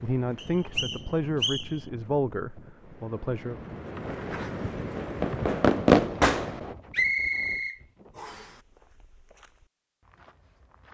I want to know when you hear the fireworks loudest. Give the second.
6 s.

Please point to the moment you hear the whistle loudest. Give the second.
7 s.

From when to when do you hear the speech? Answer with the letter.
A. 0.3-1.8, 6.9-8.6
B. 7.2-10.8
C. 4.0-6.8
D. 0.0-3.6
D.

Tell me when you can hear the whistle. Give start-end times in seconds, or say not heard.
0.3-1.8, 6.9-8.6.